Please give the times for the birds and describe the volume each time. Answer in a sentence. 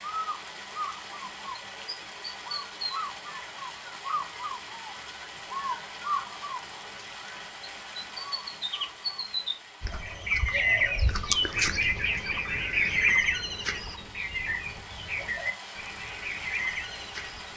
You can hear the birds from 0.0 to 17.5 s, getting louder then quieter.